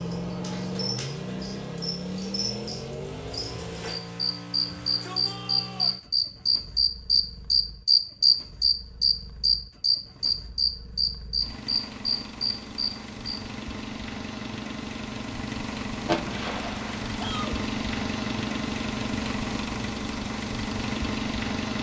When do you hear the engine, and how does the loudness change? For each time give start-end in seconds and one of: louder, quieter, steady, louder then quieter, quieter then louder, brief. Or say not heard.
0.0-21.7 quieter then louder.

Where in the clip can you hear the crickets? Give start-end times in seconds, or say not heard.
0.0-13.4.